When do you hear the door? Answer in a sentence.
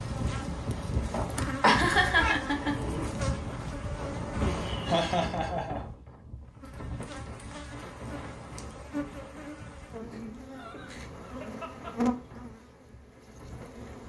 You can't hear the door here.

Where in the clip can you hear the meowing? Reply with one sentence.
The meowing can be heard from 1.6 to 2.4 s.